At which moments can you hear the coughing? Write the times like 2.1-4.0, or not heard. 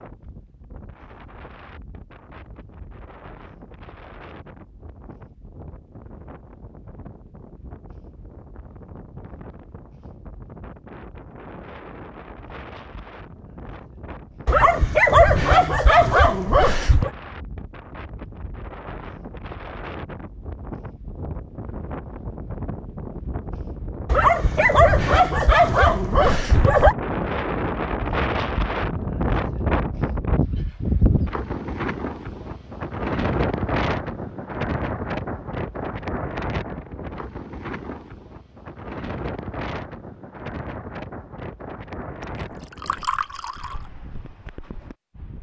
not heard.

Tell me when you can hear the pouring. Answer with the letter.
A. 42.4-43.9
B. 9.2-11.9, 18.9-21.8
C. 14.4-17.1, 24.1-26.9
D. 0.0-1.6
A.